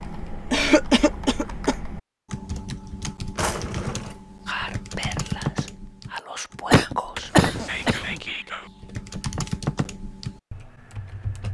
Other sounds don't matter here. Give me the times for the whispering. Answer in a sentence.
The whispering can be heard from 4.5 to 8.7 s.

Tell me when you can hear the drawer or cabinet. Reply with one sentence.
You can hear the drawer or cabinet from 3.4 to 4.2 s and from 7.0 to 8.2 s.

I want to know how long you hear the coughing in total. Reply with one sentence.
You can hear the coughing for 3 seconds altogether.